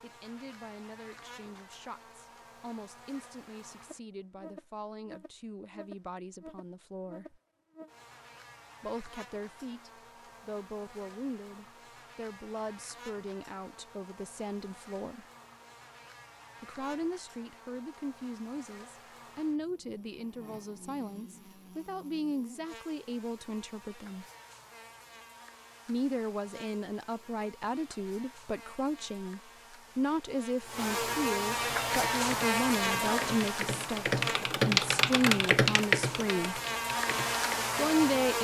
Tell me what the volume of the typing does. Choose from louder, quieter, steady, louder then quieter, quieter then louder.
louder then quieter.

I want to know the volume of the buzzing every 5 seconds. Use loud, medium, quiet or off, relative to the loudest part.
quiet, quiet, quiet, quiet, quiet, quiet, loud, loud.